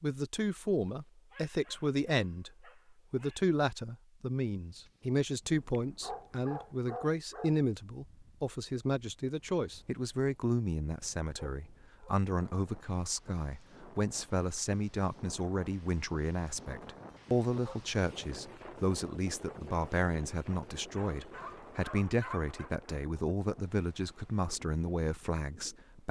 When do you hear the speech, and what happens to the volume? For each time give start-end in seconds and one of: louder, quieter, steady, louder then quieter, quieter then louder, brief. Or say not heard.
0.0-26.0 steady.